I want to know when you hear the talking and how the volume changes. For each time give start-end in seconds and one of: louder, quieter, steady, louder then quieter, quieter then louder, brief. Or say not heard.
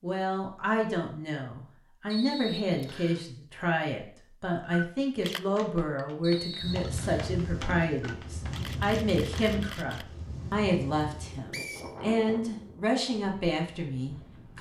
0.0-14.5 steady.